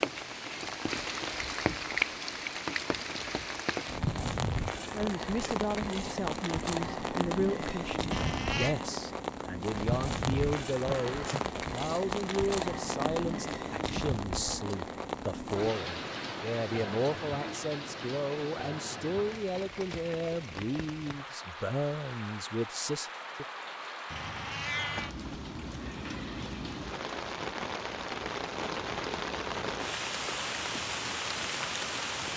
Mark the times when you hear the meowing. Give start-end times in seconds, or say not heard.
8.1-8.8, 24.1-25.1.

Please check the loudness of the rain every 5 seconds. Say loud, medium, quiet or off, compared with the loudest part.
loud, loud, loud, medium, medium, loud, loud.